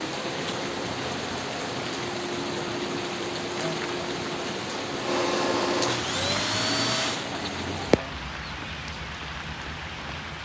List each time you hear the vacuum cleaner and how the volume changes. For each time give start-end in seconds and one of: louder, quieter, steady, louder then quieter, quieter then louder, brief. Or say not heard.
0.0-7.3 louder.